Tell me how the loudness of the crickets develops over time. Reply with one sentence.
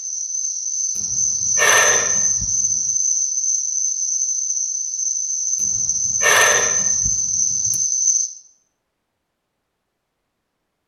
The loudness of the crickets stays about the same.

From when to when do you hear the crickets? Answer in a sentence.
You can hear the crickets from 0.0 to 8.3 s.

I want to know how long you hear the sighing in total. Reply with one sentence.
You can hear the sighing for 4 seconds altogether.